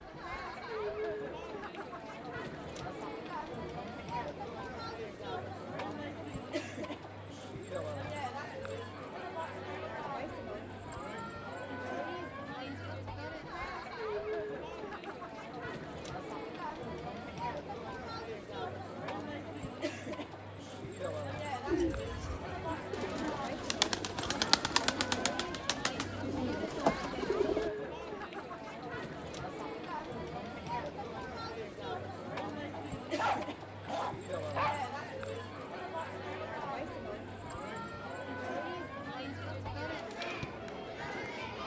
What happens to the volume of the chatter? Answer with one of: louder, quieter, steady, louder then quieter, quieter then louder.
steady.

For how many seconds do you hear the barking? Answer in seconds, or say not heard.
2 s.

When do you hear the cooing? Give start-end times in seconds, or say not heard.
21.6-27.7.